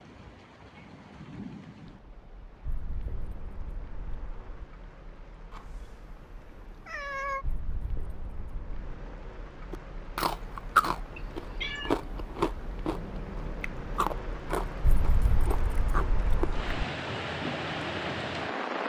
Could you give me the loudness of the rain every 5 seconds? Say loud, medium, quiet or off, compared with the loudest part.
quiet, quiet, medium, loud.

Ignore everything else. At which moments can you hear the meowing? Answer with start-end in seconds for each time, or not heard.
5.5-7.5, 11.2-12.0.